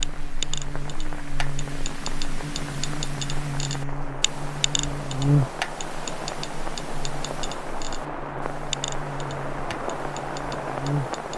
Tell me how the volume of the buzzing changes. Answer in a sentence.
The loudness of the buzzing goes up, then down.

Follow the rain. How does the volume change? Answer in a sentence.
The loudness of the rain goes up.